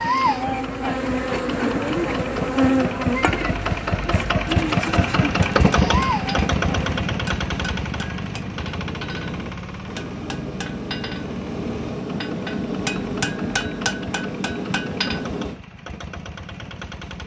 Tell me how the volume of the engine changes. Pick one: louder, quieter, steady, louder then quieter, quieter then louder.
louder then quieter.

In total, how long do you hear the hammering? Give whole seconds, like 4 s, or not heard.
10 s.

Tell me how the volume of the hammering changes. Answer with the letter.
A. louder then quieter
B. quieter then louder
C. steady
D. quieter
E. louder
E.